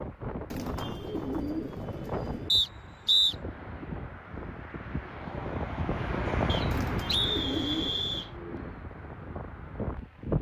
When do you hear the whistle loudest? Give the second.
3 s.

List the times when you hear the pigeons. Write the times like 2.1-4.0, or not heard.
0.5-2.5, 6.7-8.2.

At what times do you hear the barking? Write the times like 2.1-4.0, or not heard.
not heard.